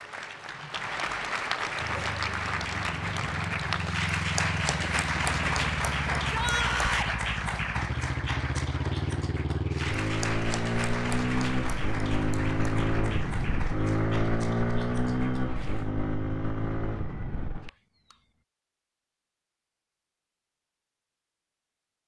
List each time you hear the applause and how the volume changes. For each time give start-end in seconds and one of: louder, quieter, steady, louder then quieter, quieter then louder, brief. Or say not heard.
0.0-15.9 quieter.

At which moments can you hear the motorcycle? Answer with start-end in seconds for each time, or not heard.
1.8-18.1.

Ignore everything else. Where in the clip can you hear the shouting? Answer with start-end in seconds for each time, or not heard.
6.2-7.2.